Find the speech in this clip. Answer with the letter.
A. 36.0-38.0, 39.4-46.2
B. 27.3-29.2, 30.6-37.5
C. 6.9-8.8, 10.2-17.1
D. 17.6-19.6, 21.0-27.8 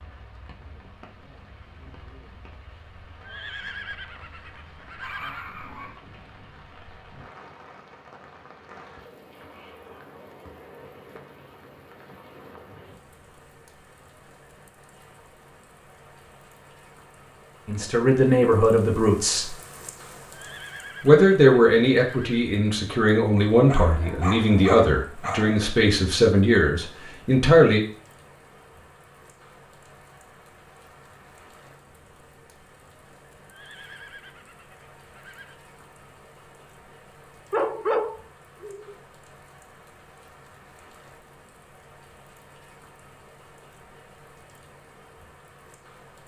D.